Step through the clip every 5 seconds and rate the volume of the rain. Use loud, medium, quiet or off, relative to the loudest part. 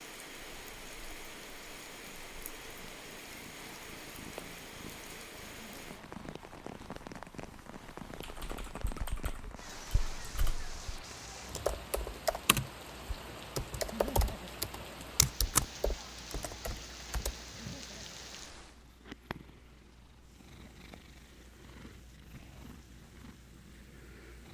loud, loud, loud, loud, quiet.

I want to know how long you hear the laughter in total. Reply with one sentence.
You can hear the laughter for 2 seconds altogether.